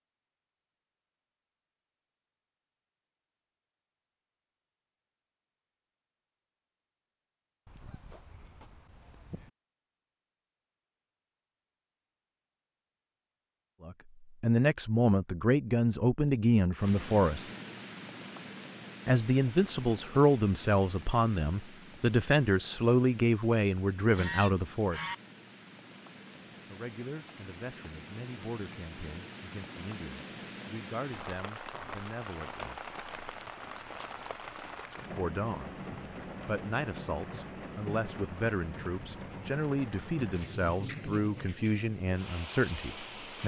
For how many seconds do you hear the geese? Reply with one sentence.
The geese can be heard for 3 seconds in total.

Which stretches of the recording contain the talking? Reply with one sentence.
You can hear the talking from 13.8 to 17.4 s, from 19.1 to 25.0 s, from 26.7 to 32.8 s, from 35.1 to 35.8 s and from 36.5 to 43.4 s.